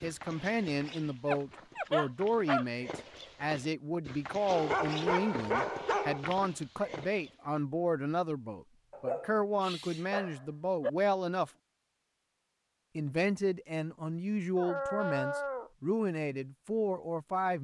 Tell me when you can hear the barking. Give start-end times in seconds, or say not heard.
1.2-2.6, 4.5-6.3, 8.9-10.9, 14.6-15.7.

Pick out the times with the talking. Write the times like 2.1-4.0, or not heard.
0.0-11.5, 12.9-17.5.